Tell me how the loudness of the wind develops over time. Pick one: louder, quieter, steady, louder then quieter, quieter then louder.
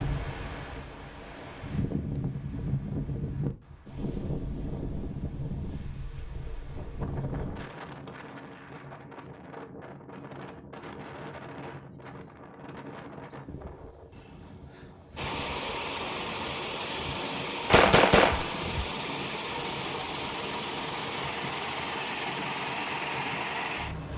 quieter.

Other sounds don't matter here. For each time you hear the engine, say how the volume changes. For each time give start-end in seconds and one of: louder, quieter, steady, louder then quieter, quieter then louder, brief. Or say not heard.
15.2-24.1 steady.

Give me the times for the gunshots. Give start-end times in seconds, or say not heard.
17.7-18.9.